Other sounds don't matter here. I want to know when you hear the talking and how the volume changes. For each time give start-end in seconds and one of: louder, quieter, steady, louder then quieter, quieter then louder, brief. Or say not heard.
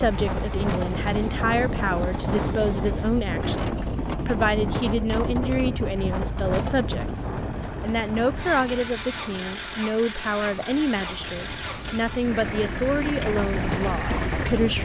0.0-14.8 steady.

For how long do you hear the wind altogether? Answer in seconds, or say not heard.
15 s.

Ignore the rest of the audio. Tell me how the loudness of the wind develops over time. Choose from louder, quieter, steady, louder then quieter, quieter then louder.
quieter then louder.